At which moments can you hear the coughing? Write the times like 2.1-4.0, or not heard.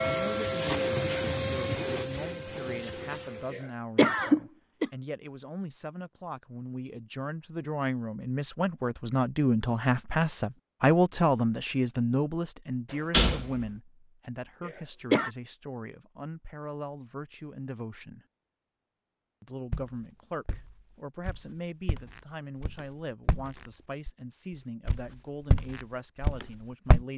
3.5-4.9, 14.7-15.3.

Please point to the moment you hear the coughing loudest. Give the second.
4 s.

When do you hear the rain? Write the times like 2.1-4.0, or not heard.
not heard.